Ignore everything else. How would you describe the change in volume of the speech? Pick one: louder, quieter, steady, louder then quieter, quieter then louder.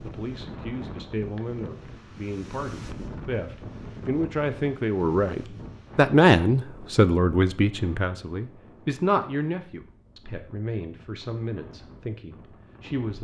louder then quieter.